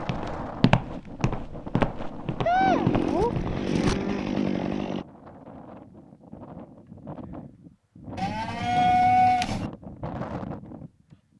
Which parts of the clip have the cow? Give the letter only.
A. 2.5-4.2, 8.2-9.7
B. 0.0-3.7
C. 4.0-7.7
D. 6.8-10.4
A.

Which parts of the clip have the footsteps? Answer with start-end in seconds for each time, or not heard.
0.0-3.7.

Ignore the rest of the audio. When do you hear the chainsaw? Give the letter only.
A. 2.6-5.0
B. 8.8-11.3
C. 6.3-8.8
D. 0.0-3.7
A.